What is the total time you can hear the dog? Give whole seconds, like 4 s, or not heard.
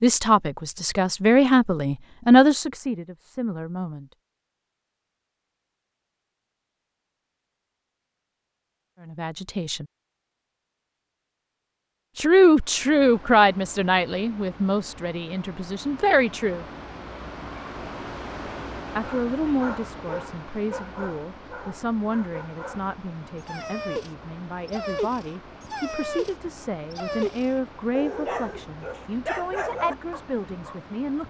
12 s.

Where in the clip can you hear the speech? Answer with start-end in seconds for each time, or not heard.
0.0-4.0, 9.1-9.8, 12.2-16.6, 18.9-31.2.